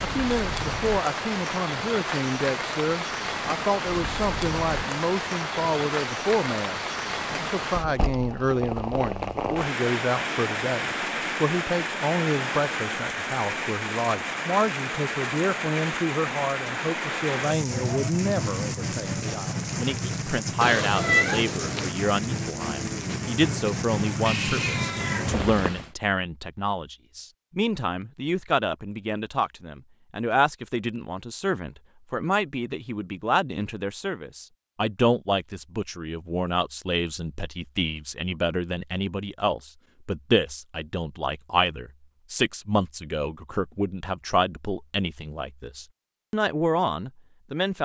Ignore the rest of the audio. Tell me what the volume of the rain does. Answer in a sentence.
The volume of the rain stays about the same.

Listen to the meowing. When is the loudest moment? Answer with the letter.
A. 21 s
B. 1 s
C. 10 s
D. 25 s
A.